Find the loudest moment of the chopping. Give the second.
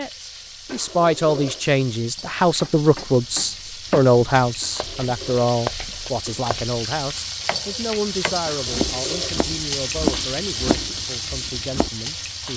10 s.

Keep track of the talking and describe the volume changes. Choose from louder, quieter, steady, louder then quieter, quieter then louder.
quieter.